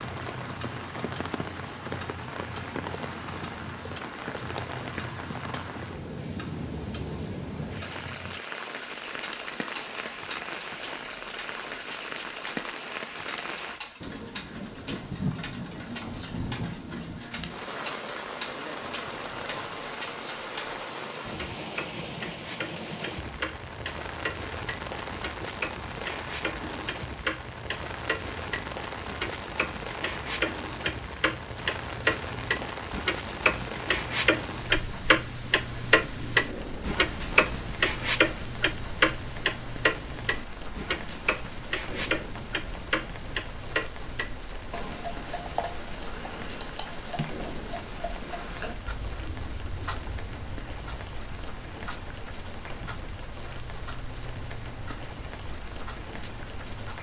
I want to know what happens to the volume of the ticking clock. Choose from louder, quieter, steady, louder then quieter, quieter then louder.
louder then quieter.